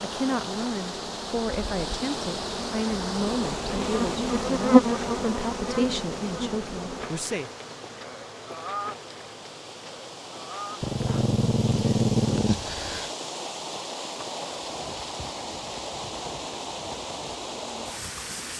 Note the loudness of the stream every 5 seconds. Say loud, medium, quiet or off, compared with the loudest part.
loud, medium, loud, loud.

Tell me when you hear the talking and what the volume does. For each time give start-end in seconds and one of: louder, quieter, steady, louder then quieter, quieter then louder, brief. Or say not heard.
0.0-7.5 steady.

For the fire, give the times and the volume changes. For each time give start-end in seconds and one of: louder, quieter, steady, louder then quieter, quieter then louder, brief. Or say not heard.
not heard.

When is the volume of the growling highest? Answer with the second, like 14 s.
12 s.